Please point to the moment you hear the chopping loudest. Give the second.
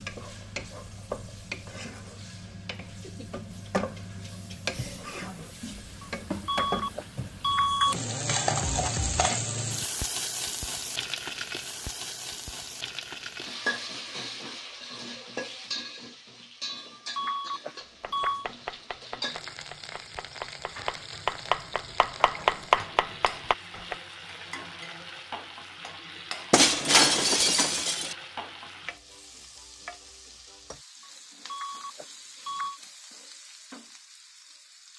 23 s.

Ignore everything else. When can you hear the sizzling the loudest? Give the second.
9 s.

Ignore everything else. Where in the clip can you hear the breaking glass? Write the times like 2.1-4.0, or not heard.
26.5-28.1.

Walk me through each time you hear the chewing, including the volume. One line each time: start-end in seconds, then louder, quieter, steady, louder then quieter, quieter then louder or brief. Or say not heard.
not heard.